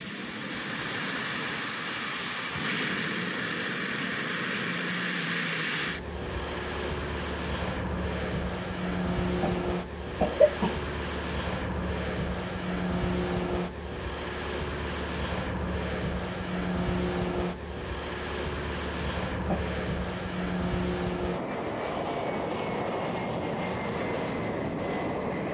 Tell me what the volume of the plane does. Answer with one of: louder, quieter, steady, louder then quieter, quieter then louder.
steady.